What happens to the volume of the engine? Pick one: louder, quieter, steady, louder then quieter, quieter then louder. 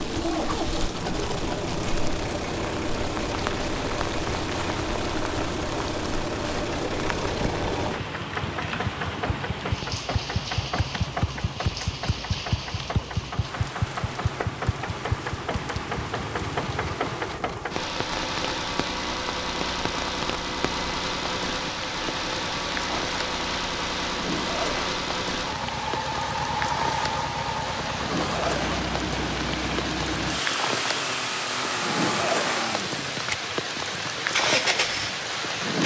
steady.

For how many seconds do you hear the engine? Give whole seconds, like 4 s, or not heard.
36 s.